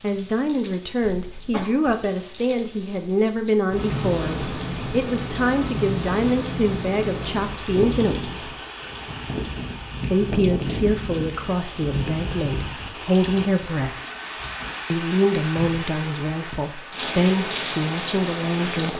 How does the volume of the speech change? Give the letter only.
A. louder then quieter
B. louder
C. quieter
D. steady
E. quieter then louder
D.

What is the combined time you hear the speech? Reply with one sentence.
You can hear the speech for 16 seconds altogether.